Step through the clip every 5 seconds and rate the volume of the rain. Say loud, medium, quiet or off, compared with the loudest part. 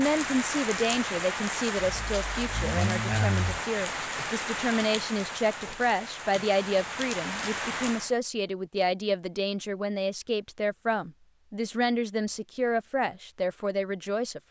loud, loud, off.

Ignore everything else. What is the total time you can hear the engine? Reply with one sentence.
The engine can be heard for 2 seconds in total.